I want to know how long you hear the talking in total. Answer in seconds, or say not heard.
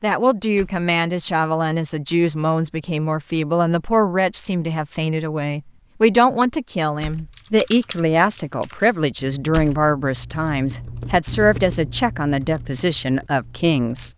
14 s.